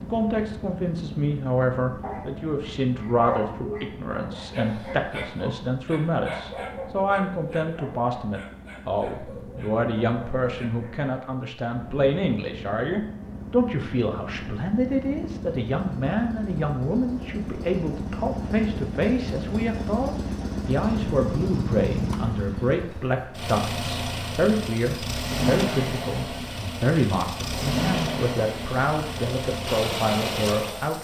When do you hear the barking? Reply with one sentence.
The barking can be heard from 2.0 to 11.1 s.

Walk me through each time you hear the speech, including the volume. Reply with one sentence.
The speech can be heard from 0.0 to 30.9 s, at a steady volume.